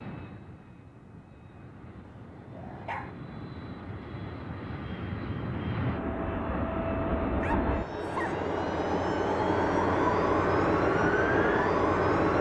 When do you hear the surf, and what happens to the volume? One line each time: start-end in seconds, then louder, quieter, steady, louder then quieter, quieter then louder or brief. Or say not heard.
not heard.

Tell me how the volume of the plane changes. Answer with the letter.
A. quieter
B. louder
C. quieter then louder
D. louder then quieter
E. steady
B.